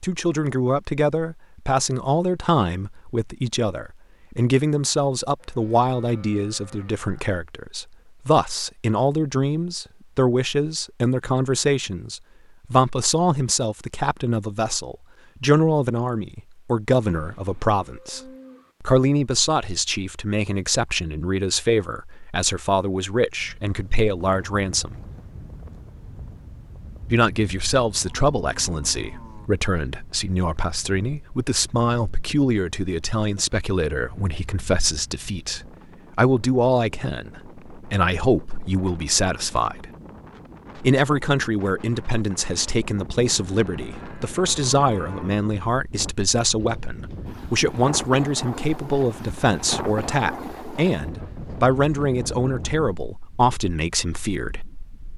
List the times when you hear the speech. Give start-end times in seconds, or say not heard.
0.0-18.2, 18.8-24.9, 27.1-39.9, 40.8-54.6.